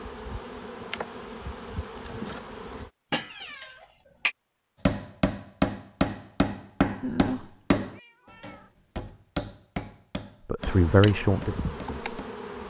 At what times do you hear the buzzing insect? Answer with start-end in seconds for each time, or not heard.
0.0-2.9, 10.6-12.6.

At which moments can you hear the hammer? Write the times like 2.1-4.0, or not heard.
4.8-12.4.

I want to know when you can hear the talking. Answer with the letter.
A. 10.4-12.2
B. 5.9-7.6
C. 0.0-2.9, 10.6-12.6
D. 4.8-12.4
A.